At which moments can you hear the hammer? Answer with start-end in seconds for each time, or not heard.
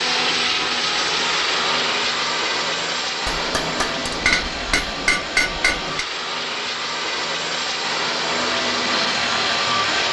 3.2-6.0.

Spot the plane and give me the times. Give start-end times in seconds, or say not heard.
0.0-10.0.